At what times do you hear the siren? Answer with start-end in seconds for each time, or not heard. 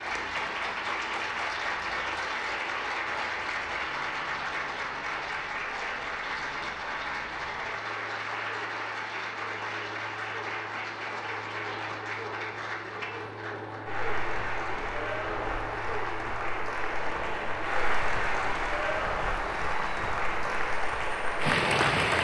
not heard.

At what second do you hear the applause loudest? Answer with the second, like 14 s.
22 s.